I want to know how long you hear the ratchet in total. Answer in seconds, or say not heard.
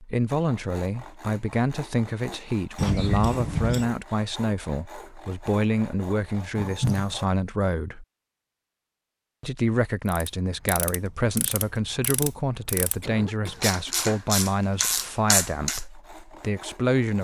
6 s.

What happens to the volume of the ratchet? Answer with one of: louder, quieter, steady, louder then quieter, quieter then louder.
louder.